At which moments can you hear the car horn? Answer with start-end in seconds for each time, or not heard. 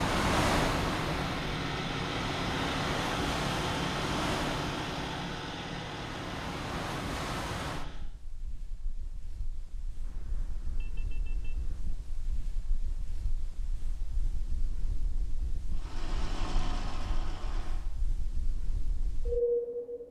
10.0-11.8.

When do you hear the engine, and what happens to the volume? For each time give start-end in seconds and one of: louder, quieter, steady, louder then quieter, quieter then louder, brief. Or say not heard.
0.0-8.1 quieter
15.7-17.9 brief.